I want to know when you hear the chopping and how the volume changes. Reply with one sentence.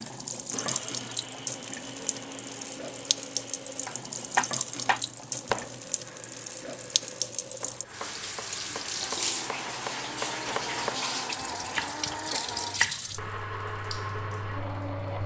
You can hear the chopping briefly from 3.9 to 5.8 s; and from 7.5 to 13.3 s, getting louder.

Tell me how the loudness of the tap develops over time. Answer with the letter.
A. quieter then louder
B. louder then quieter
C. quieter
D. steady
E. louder
D.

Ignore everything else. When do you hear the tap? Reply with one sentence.
You can hear the tap from 0.0 to 15.2 s.